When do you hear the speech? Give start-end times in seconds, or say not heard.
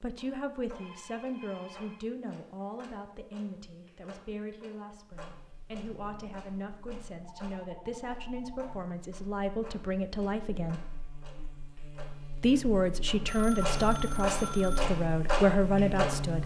0.0-10.8, 12.4-16.4.